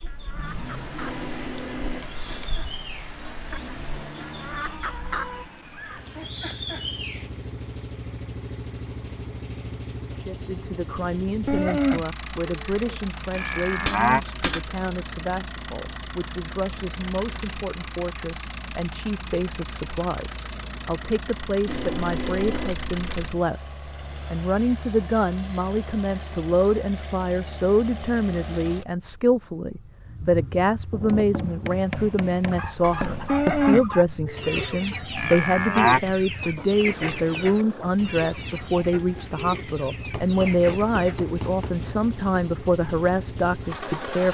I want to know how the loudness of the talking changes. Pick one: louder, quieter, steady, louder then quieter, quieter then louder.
louder.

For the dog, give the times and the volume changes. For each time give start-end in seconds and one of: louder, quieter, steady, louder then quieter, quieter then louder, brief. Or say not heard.
not heard.